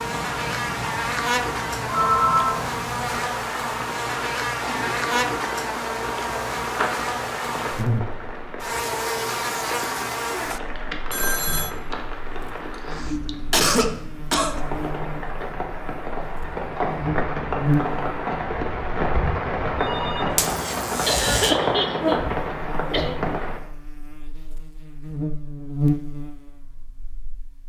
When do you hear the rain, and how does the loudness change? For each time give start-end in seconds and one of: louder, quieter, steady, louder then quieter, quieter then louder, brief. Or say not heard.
0.0-23.6 louder.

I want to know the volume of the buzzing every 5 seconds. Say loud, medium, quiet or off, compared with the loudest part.
loud, loud, medium, loud, loud, loud.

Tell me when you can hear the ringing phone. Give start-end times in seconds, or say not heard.
1.9-2.6, 11.1-11.7, 19.8-20.4.